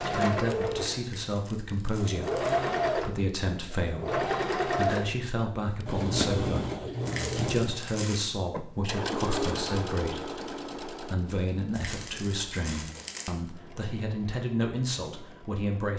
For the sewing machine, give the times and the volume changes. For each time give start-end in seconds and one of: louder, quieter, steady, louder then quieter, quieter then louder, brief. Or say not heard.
0.0-15.9 quieter.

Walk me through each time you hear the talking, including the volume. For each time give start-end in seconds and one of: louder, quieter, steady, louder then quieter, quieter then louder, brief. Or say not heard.
0.0-15.9 steady.